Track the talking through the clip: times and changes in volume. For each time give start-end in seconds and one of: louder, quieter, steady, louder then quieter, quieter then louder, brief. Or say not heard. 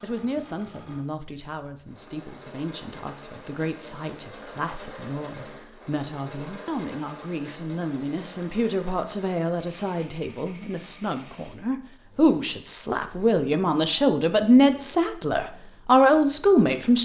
0.0-16.9 louder.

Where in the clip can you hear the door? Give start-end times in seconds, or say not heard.
not heard.